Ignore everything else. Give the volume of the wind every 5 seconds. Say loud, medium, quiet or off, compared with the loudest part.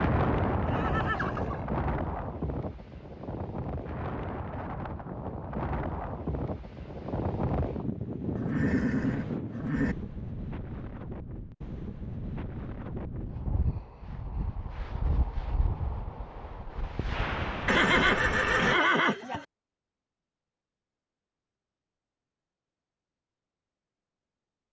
loud, loud, medium, loud, off.